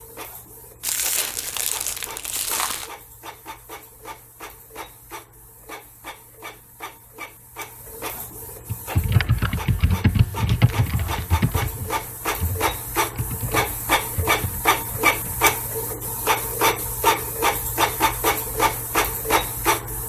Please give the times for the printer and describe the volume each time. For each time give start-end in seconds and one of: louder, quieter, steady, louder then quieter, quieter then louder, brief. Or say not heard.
0.0-20.0 louder.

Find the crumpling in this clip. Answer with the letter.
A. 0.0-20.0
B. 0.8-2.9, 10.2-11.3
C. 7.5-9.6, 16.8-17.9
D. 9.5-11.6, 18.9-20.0
B.